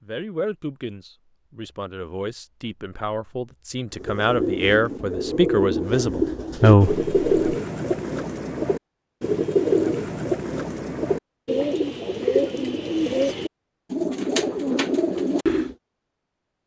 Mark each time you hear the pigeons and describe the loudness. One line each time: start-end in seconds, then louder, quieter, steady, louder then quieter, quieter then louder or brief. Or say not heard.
4.0-15.8 steady.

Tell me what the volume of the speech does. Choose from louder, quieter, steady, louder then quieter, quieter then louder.
louder.